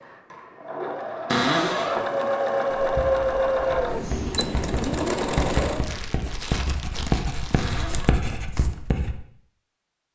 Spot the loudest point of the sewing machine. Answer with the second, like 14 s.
3 s.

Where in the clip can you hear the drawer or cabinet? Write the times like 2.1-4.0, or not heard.
1.2-1.9, 7.5-8.2.